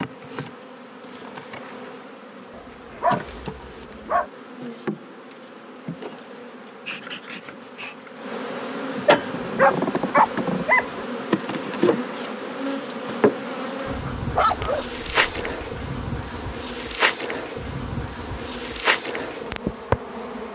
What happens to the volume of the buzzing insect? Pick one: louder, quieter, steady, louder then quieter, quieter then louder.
louder.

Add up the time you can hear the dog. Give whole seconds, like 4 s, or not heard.
6 s.